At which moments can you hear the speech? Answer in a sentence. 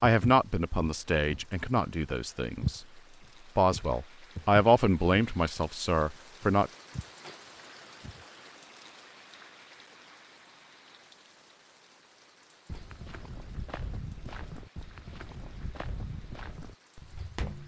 The speech can be heard from 0.0 to 2.9 s and from 3.5 to 6.7 s.